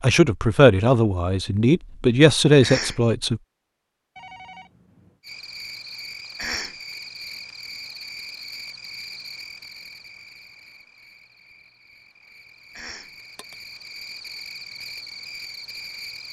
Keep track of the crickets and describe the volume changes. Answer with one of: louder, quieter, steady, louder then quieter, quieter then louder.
quieter then louder.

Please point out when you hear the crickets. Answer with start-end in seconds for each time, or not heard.
5.2-16.2.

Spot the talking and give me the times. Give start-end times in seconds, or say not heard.
0.0-3.4.